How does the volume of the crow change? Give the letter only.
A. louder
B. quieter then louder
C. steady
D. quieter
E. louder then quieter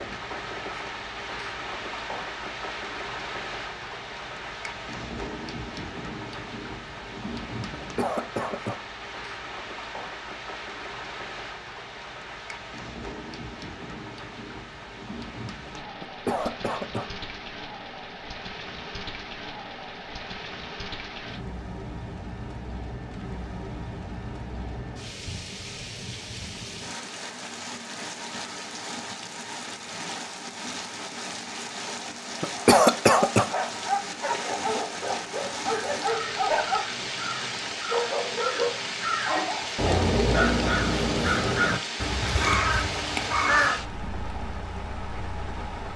A.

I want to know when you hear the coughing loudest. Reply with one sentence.
The volume of the coughing peaks at 33 seconds.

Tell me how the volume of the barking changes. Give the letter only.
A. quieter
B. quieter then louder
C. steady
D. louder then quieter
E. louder
C.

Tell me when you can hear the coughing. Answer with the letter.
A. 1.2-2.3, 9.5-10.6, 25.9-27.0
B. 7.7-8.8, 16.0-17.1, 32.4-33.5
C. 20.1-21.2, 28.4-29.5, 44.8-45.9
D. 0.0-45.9
B.